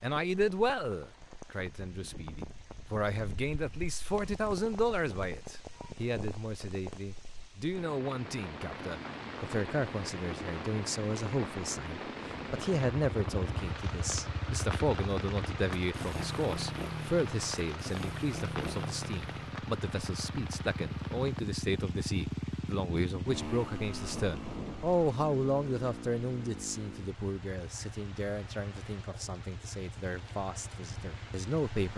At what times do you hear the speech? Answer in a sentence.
The speech can be heard from 0.0 to 31.9 s.